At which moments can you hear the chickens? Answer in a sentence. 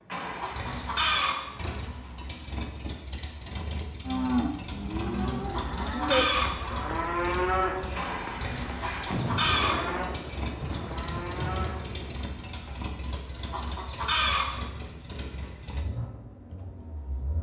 The chickens can be heard from 0.3 to 1.4 s, from 5.5 to 6.5 s, from 8.8 to 9.8 s and from 13.4 to 14.5 s.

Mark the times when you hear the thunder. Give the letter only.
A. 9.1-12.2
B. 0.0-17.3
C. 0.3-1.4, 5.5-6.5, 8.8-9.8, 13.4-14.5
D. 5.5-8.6
A.